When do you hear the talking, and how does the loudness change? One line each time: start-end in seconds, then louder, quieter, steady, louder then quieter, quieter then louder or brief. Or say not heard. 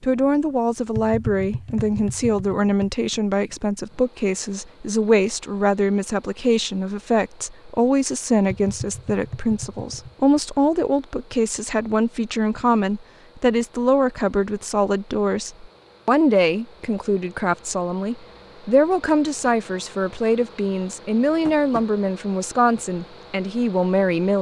0.0-24.3 steady.